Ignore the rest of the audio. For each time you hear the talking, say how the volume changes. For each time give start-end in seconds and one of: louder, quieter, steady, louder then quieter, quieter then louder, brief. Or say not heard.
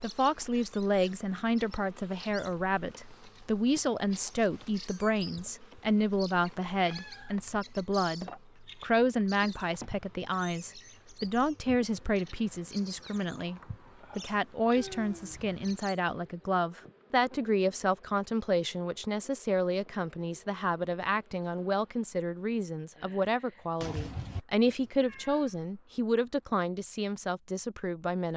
0.0-28.3 steady.